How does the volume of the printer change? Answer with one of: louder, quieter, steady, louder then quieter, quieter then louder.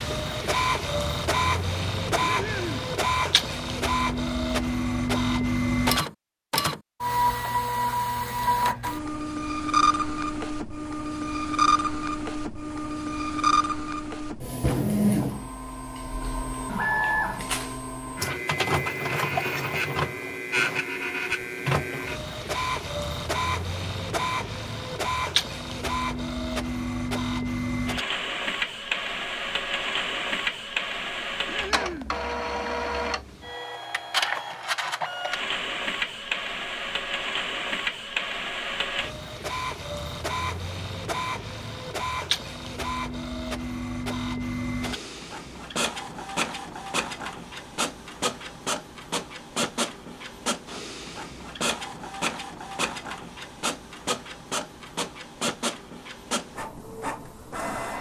quieter.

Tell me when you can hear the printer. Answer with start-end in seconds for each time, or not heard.
0.0-57.9.